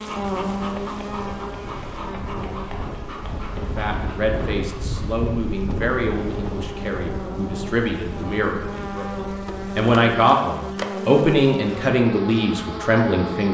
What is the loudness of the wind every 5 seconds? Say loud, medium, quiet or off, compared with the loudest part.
loud, loud, off.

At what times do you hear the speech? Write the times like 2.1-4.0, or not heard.
3.8-13.4.